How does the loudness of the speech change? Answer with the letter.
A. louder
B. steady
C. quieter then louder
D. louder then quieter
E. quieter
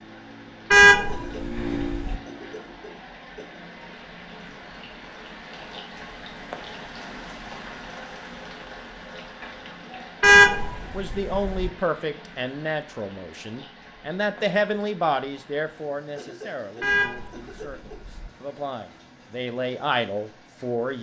C.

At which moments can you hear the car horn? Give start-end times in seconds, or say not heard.
0.7-2.1, 10.2-11.7, 16.8-18.3.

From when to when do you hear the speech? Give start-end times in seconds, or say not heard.
10.8-20.9.